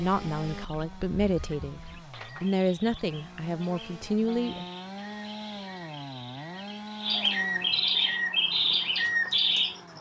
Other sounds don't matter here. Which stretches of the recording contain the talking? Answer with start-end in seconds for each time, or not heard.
0.0-4.7.